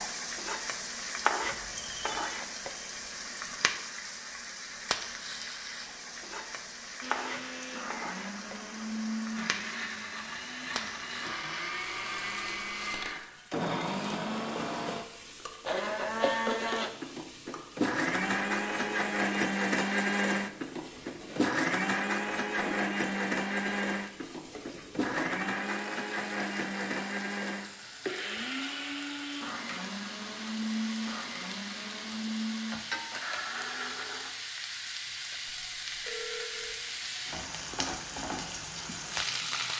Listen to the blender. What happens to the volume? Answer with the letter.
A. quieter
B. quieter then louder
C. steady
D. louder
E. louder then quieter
E.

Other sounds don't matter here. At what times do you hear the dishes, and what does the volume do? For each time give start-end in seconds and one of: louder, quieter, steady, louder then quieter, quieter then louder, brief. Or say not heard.
not heard.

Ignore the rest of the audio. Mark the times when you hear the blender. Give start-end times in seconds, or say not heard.
7.0-34.3.